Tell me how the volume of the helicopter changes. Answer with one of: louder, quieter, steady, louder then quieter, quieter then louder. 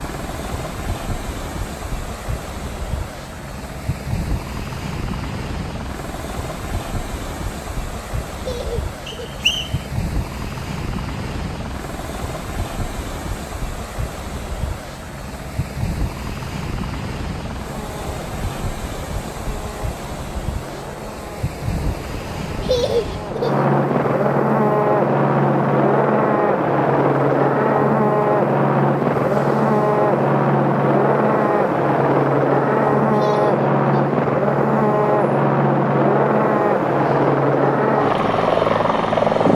louder.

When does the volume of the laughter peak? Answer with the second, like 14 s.
23 s.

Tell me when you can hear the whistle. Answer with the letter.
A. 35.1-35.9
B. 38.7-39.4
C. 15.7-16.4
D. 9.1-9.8
D.